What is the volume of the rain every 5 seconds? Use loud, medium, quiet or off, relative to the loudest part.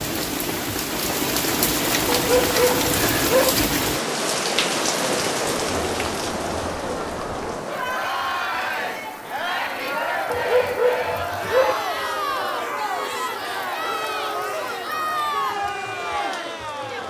loud, medium, quiet, quiet.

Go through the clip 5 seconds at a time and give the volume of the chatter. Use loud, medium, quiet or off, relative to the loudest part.
off, loud, loud, loud.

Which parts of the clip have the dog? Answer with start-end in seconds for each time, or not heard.
2.0-3.5, 10.3-11.8.